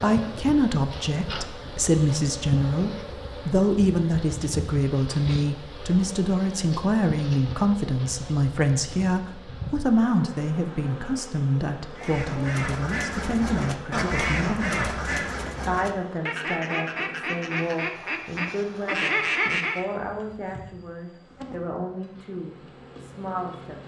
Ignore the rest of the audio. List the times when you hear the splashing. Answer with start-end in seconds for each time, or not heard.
not heard.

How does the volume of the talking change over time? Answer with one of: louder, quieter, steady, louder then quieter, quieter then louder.
quieter.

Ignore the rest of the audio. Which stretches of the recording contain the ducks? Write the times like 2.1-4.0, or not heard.
11.9-19.9.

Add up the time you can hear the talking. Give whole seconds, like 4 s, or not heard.
24 s.